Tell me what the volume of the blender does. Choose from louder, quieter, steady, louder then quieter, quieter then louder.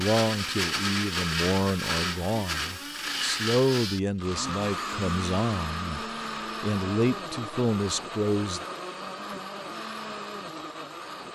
quieter.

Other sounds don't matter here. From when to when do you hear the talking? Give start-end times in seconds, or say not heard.
0.0-8.6.